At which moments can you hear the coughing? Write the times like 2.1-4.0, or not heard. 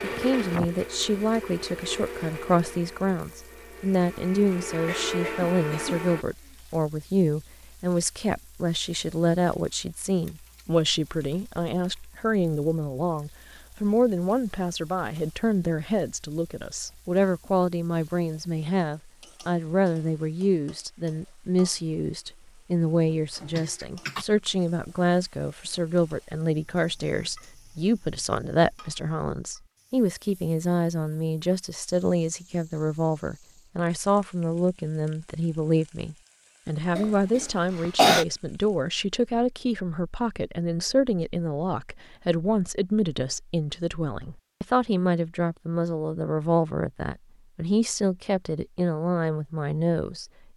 4.8-6.5, 23.1-24.2, 37.0-38.2.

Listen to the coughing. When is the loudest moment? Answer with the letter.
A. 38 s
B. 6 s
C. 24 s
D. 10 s
A.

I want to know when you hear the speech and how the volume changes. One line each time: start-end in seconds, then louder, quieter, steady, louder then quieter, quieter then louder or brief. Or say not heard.
0.0-50.2 steady.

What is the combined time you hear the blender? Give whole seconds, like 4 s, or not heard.
6 s.